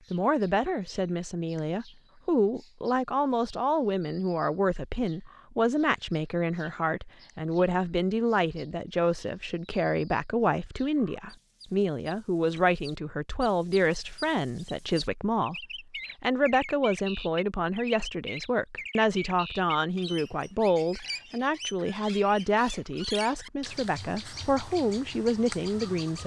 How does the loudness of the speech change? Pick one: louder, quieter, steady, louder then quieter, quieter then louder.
steady.